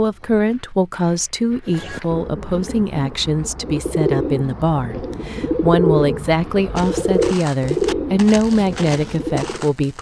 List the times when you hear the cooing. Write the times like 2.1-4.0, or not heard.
1.6-9.7.